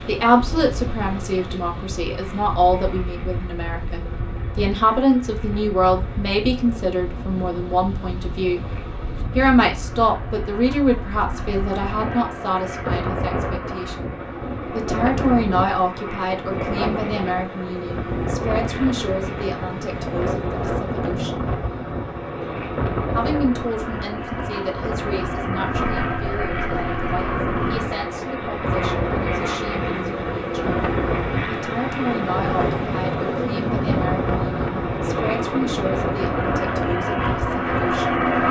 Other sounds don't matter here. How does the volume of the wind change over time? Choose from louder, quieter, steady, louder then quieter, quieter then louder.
louder.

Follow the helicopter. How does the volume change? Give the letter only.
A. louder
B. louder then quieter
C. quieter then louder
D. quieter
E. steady
A.